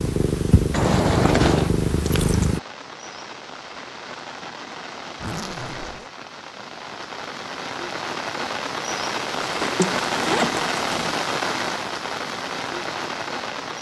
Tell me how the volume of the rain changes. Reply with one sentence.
The loudness of the rain goes up.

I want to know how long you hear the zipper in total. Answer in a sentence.
You can hear the zipper for 4 seconds altogether.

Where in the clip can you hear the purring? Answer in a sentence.
The purring can be heard from 0.0 to 2.6 s.